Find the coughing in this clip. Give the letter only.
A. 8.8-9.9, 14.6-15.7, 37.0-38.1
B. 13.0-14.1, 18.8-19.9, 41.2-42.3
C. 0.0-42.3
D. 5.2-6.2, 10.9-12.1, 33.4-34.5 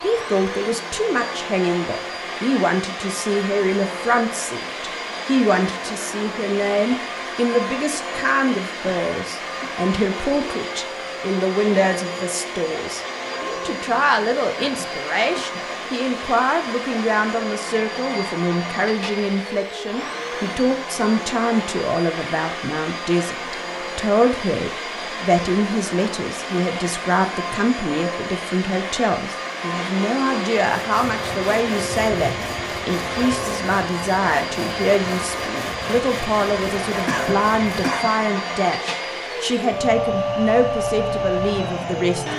A.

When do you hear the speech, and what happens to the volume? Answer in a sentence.
You can hear the speech from 0.0 to 42.3 s, at a steady volume.